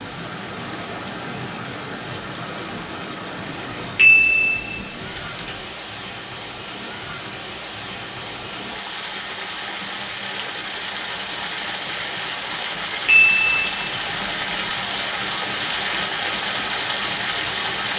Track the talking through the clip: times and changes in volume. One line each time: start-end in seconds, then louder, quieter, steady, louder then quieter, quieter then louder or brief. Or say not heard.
not heard.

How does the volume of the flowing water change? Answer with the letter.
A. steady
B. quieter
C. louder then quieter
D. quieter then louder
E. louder
E.